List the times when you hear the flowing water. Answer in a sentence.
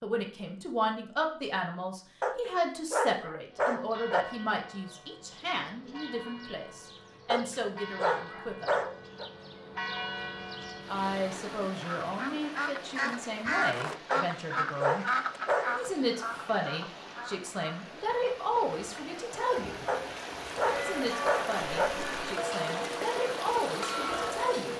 You can hear the flowing water from 10.8 to 24.7 s.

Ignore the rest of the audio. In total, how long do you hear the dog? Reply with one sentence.
You can hear the dog for 8 seconds altogether.